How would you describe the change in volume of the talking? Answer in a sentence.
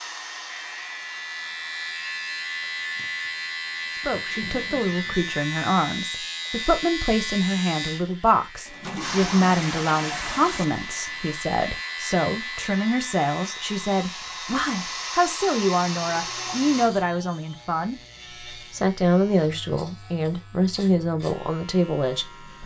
The volume of the talking stays about the same.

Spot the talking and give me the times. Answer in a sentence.
You can hear the talking from 4.0 to 22.6 s.